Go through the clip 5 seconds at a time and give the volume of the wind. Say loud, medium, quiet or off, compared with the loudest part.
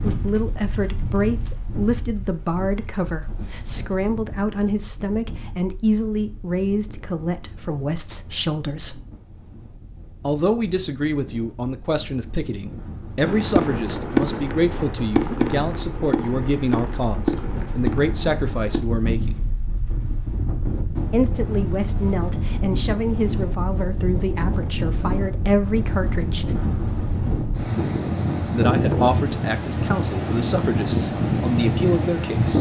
quiet, quiet, quiet, medium, medium, loud, loud.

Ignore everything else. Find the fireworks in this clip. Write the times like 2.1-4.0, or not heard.
13.2-18.8.